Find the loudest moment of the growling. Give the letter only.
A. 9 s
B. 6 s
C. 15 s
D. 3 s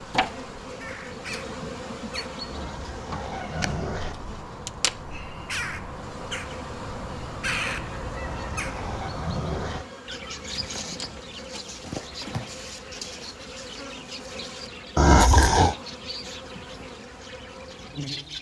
C.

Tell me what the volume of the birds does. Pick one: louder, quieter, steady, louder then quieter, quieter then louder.
louder then quieter.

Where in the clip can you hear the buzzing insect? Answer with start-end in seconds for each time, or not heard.
0.0-18.3.